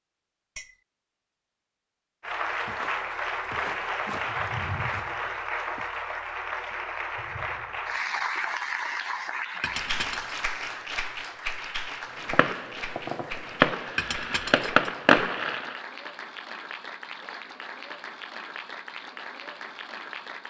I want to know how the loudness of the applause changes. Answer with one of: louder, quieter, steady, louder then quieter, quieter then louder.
quieter.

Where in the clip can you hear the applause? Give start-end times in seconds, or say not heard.
2.2-20.4.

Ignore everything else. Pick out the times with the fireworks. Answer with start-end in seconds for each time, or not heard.
12.3-15.8.